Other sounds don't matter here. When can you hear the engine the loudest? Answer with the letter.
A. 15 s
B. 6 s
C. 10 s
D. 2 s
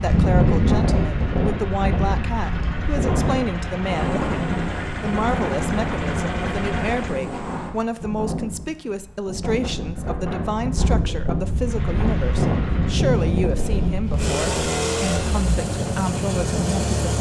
A.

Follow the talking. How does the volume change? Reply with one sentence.
The loudness of the talking stays about the same.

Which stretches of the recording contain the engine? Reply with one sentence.
The engine can be heard from 0.0 to 7.2 s and from 11.6 to 17.1 s.